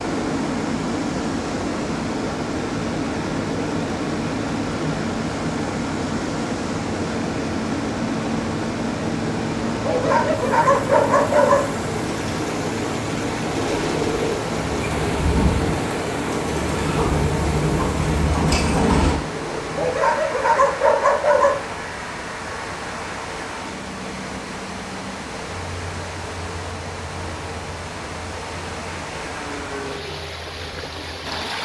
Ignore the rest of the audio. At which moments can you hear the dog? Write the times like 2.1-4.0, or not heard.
9.7-11.7, 19.6-21.6.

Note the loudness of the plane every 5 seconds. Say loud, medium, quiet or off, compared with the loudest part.
loud, loud, loud, loud, medium, quiet, quiet.